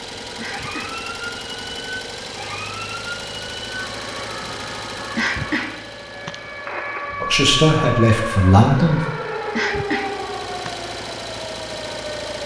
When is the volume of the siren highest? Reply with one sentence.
The loudest moment of the siren is at 8 seconds.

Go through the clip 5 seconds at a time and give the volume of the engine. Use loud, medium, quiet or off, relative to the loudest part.
loud, medium, loud.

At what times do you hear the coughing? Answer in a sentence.
The coughing can be heard from 0.3 to 1.0 s, from 5.2 to 6.3 s and from 9.5 to 10.8 s.